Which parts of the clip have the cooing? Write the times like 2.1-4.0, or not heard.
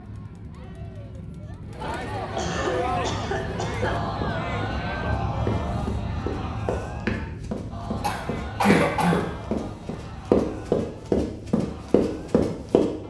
not heard.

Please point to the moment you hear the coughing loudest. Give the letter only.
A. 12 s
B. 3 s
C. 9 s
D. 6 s
C.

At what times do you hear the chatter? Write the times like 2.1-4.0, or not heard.
0.0-13.0.